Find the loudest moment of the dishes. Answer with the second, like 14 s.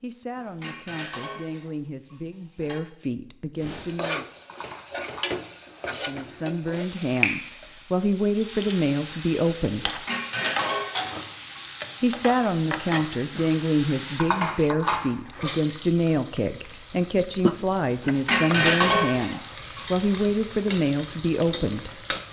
19 s.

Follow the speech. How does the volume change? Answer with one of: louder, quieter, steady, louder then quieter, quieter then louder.
louder.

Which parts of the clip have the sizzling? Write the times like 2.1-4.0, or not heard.
3.5-22.2.